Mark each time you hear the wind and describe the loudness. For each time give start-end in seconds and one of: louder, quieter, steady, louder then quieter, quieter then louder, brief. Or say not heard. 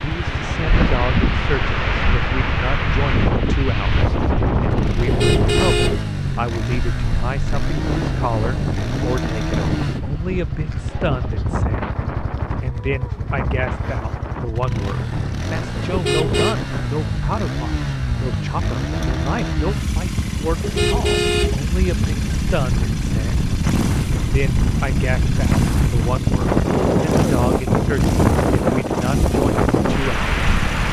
0.0-30.8 quieter then louder.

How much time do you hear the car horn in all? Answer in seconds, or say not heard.
4 s.